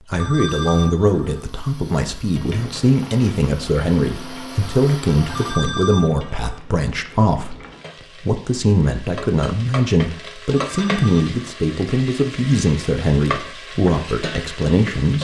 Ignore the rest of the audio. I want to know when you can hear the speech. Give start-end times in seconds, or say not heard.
0.1-7.5, 8.2-15.1.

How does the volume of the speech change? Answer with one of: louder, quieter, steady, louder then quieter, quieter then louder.
steady.